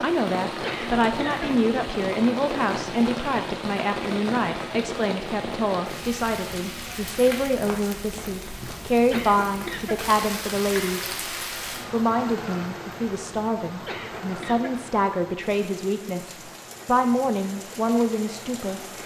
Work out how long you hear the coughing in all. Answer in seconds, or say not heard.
3 s.